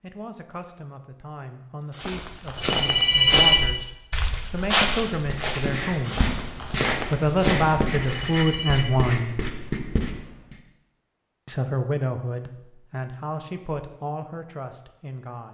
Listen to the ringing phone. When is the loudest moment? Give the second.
3 s.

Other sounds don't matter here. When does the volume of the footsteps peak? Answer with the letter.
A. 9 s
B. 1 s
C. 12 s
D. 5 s
D.